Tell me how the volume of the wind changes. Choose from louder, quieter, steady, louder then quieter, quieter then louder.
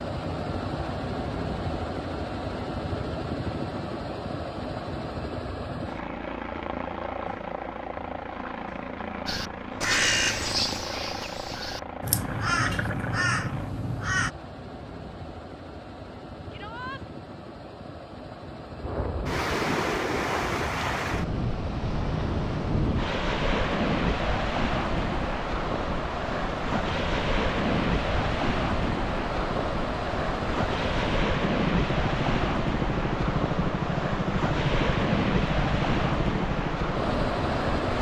steady.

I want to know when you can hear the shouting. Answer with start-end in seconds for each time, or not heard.
16.5-17.1.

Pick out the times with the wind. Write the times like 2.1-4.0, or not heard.
18.8-37.9.